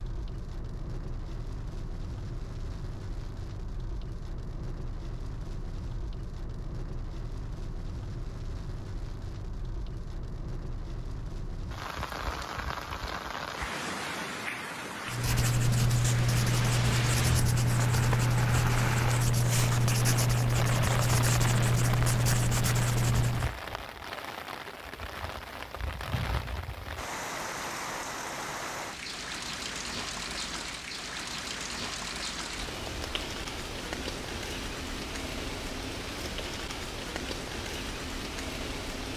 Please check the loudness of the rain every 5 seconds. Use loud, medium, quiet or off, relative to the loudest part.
medium, medium, loud, loud, loud, loud, loud, loud.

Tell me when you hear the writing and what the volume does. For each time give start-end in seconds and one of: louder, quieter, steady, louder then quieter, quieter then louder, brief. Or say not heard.
15.1-23.6 steady.